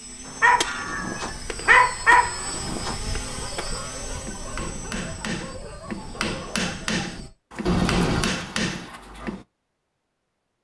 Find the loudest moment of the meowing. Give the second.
8 s.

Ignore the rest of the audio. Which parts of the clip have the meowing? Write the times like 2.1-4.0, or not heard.
0.7-1.4, 7.7-8.3.